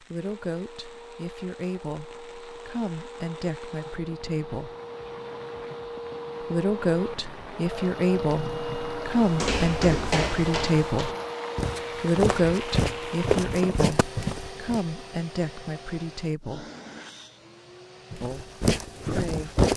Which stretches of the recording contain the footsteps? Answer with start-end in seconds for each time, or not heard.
9.2-14.8, 18.1-19.7.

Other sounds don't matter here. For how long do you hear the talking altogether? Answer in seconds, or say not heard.
16 s.